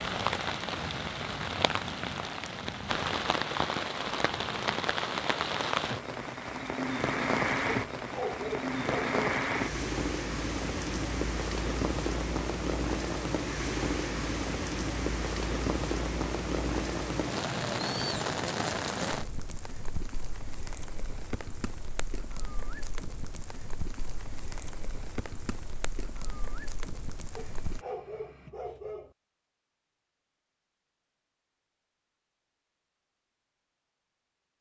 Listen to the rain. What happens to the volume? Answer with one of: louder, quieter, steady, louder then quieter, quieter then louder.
quieter.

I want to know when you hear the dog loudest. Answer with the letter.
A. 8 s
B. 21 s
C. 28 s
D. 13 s
A.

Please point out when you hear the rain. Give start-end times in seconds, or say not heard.
0.0-27.9.